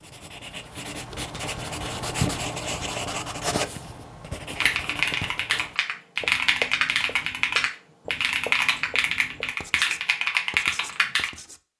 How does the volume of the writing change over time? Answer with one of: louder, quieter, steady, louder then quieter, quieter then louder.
quieter.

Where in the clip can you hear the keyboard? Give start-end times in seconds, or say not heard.
4.5-11.3.